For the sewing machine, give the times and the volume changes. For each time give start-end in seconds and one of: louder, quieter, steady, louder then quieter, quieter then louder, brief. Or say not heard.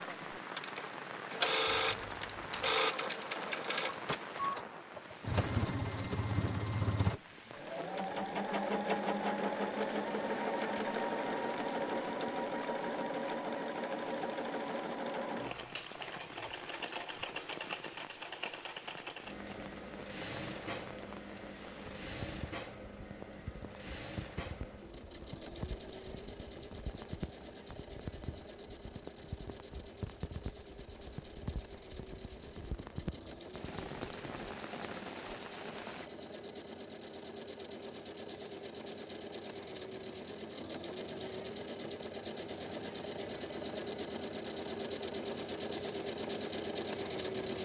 0.0-47.5 quieter then louder.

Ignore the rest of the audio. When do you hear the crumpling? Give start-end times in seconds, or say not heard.
1.8-2.8.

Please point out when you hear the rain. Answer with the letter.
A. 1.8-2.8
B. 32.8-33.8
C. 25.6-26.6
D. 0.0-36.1
D.